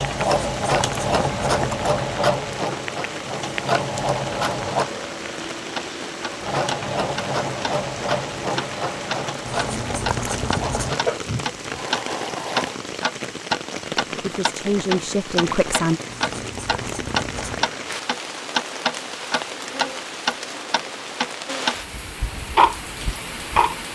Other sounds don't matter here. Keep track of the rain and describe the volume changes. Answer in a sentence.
The loudness of the rain stays about the same.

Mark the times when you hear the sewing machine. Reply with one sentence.
You can hear the sewing machine from 0.0 to 4.9 s and from 6.4 to 12.8 s.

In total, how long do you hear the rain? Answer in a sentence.
You can hear the rain for 24 seconds altogether.